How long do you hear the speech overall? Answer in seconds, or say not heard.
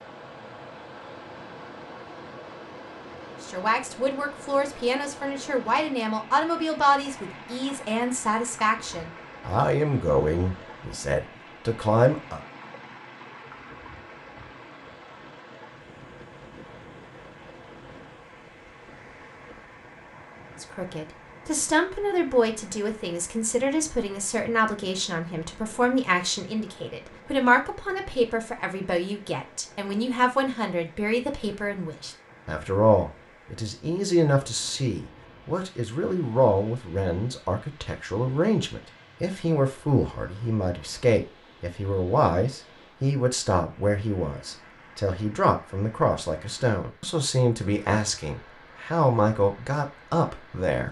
39 s.